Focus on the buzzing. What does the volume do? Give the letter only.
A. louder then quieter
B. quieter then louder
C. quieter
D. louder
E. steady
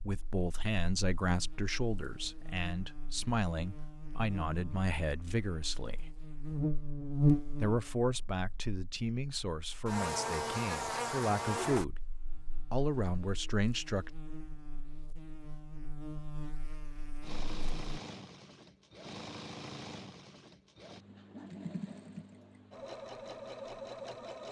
A.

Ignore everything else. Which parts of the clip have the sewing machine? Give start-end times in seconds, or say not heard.
17.2-24.4.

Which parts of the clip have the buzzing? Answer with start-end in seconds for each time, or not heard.
0.0-17.9.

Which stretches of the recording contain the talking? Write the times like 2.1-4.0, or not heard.
0.0-6.1, 7.6-11.9, 12.7-14.1.